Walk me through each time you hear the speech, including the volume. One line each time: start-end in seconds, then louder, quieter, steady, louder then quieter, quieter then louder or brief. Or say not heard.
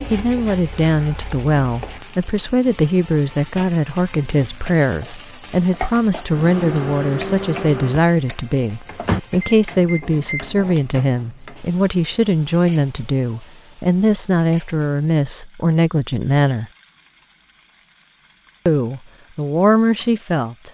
0.1-16.7 steady
18.6-20.6 brief.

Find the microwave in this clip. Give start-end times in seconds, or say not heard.
6.3-10.6.